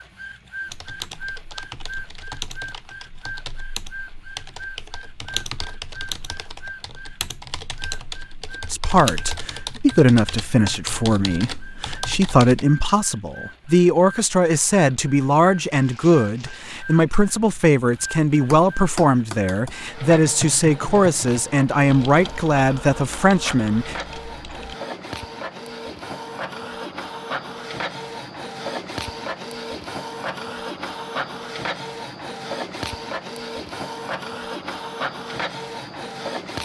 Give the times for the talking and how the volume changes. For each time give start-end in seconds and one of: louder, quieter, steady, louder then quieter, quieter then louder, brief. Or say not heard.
8.7-23.9 steady.